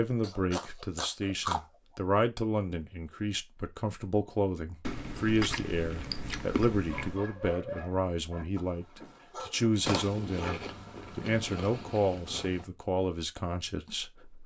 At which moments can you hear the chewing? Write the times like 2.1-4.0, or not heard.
0.2-1.6, 4.8-7.2, 9.8-12.7.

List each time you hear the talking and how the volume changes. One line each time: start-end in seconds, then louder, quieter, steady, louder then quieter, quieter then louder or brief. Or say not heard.
0.0-14.4 steady.